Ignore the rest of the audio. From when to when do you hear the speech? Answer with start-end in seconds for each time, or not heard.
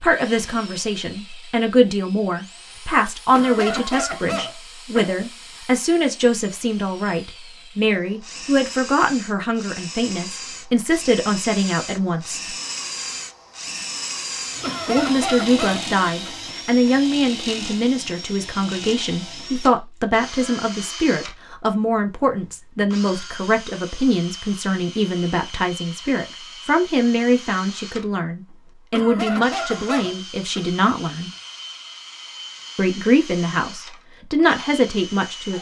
0.0-12.4, 14.8-31.3, 32.8-35.5.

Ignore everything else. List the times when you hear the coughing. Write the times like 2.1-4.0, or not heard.
3.3-5.2, 14.6-16.3, 28.9-30.6.